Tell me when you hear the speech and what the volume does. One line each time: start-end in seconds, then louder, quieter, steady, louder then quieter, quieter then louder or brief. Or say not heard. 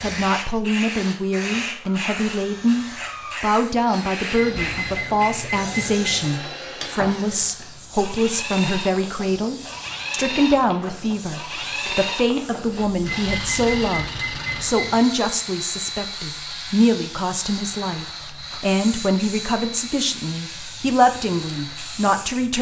0.0-22.5 steady.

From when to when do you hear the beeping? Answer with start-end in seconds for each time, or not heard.
4.3-6.3, 13.1-15.0.